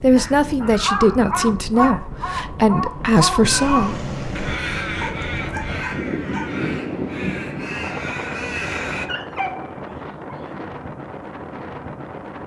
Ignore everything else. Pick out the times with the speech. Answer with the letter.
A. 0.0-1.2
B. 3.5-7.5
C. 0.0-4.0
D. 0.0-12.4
C.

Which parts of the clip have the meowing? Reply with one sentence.
You can hear the meowing from 3.4 to 4.6 s.